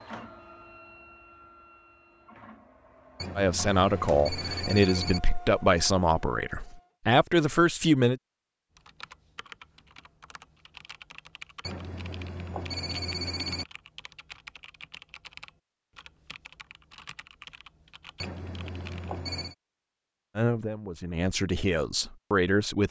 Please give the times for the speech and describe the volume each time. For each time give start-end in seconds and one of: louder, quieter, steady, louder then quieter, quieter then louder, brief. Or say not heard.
3.4-8.2 quieter then louder
20.4-22.8 brief.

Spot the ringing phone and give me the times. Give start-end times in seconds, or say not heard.
3.1-5.2, 11.6-13.7, 18.1-19.6.